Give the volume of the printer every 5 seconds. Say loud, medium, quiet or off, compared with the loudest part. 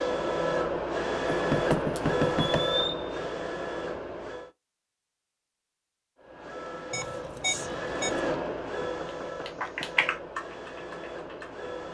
loud, medium, medium.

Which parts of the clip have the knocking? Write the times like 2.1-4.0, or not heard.
1.3-2.7, 8.8-10.1.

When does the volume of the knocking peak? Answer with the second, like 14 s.
2 s.